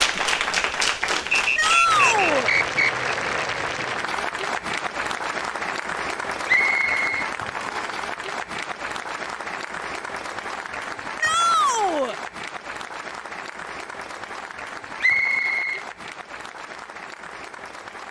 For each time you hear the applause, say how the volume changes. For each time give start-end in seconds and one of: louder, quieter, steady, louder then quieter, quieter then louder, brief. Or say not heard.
0.0-18.0 quieter.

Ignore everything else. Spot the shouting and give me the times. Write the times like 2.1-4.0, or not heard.
1.6-2.5, 11.2-12.2.